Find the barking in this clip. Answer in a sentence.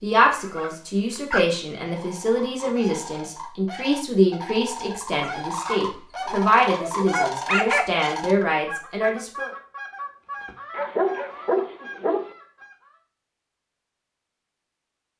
The barking can be heard from 0.3 to 1.4 s, from 5.2 to 8.0 s and from 10.7 to 12.3 s.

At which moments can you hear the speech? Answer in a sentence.
The speech can be heard from 0.0 to 9.5 s.